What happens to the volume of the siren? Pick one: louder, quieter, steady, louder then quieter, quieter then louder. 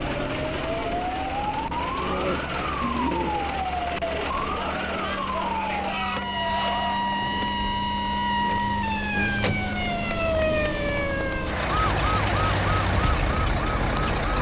steady.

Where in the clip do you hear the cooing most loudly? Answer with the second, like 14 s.
3 s.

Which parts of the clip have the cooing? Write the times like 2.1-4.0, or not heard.
1.9-3.5.